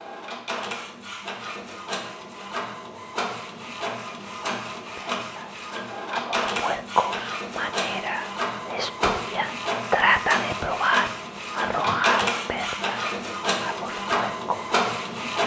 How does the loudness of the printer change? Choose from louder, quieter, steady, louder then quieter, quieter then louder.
louder.